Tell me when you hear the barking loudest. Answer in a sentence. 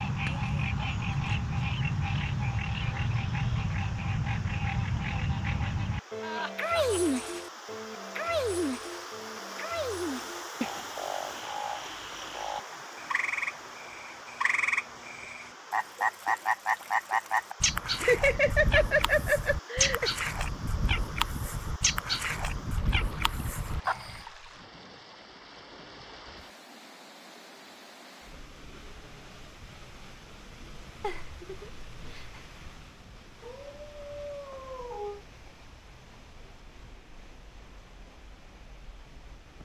The volume of the barking peaks at 35 seconds.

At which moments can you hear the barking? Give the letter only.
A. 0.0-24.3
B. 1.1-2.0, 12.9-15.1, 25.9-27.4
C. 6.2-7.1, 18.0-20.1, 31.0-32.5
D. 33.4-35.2
D.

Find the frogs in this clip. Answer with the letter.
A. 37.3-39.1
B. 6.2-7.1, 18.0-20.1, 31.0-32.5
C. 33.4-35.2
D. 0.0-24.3
D.